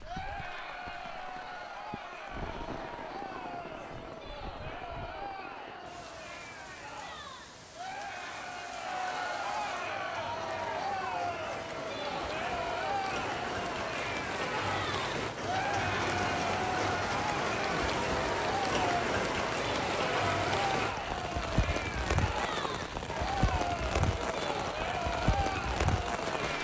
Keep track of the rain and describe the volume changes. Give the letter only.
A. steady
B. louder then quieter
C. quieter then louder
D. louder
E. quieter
D.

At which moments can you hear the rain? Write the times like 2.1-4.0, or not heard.
0.0-26.6.